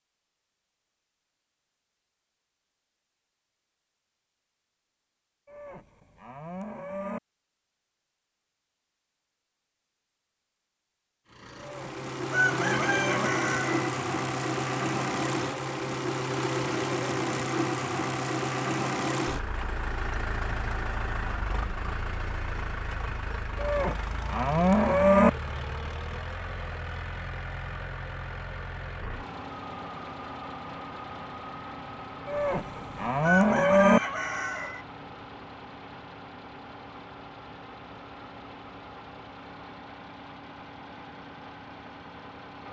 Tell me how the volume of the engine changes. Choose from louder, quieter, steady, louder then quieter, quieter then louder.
quieter.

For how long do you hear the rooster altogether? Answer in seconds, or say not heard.
3 s.